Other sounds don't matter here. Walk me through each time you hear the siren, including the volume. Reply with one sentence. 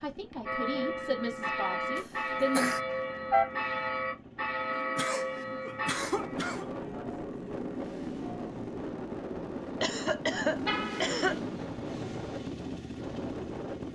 You can't hear the siren here.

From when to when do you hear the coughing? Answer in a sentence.
The coughing can be heard from 1.9 to 2.8 s, from 4.8 to 6.7 s and from 9.8 to 11.4 s.